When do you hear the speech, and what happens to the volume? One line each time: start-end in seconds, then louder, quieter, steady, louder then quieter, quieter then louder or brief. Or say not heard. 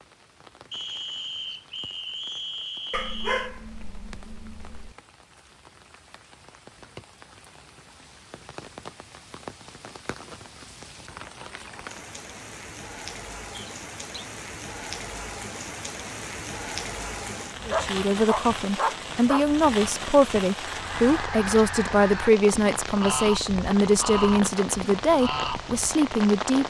17.6-26.6 steady.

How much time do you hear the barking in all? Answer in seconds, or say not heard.
4 s.